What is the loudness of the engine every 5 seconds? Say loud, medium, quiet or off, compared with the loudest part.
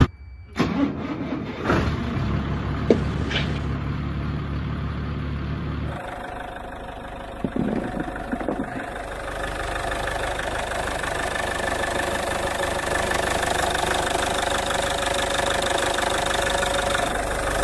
loud, medium, loud, loud.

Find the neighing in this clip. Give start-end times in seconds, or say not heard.
2.9-3.8.